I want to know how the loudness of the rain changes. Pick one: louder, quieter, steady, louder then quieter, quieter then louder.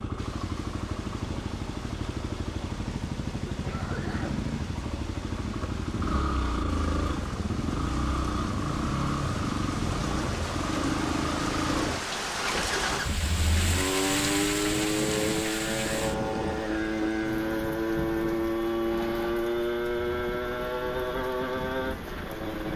louder then quieter.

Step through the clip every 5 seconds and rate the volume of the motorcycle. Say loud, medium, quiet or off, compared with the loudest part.
medium, loud, loud, loud, loud.